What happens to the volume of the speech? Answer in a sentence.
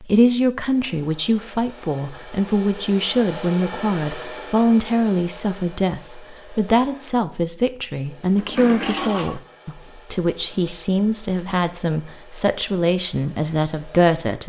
The volume of the speech stays about the same.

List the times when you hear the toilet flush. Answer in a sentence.
You can hear the toilet flush from 8.3 to 9.4 s.